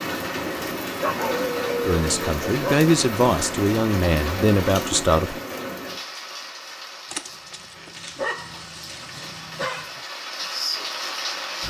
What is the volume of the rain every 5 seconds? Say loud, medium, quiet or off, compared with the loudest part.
loud, medium, loud.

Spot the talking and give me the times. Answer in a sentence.
You can hear the talking from 1.9 to 5.4 s.